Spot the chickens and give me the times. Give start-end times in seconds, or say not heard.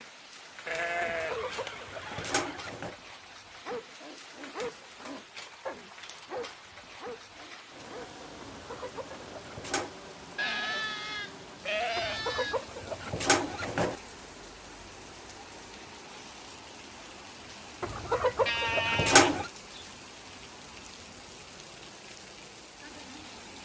1.0-3.0, 8.4-9.9, 11.9-13.9, 17.8-19.5.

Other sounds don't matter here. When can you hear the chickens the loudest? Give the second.
19 s.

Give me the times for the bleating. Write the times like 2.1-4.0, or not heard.
0.7-2.6, 10.3-12.6, 18.4-19.9.